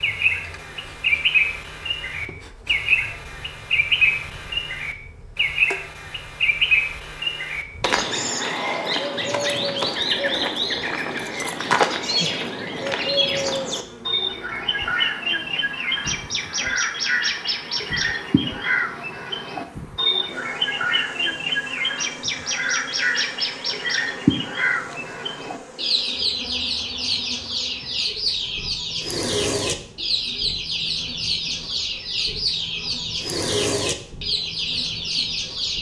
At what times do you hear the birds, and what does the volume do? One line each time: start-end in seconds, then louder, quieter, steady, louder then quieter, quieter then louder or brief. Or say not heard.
0.0-35.7 steady.